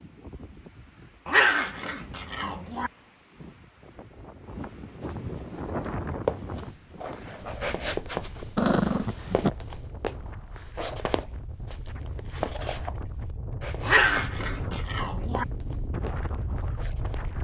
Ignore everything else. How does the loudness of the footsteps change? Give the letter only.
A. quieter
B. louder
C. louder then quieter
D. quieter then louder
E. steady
A.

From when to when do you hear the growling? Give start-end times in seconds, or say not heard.
1.2-2.9, 8.6-9.5, 13.8-15.4.